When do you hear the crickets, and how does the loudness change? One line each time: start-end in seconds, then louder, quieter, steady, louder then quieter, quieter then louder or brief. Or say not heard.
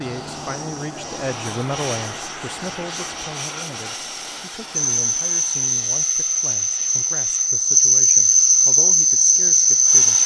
4.8-10.2 louder.